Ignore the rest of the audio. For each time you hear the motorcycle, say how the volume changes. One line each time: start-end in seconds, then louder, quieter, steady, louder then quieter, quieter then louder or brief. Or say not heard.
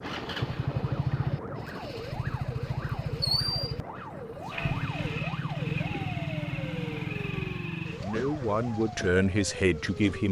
0.0-10.2 quieter.